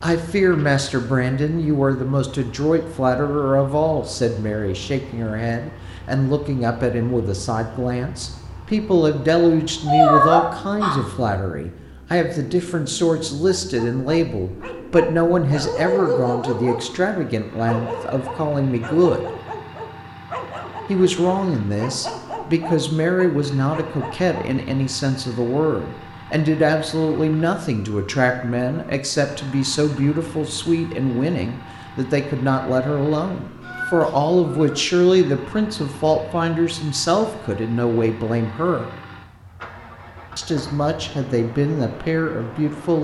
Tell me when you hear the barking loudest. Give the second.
16 s.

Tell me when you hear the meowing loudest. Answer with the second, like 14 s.
10 s.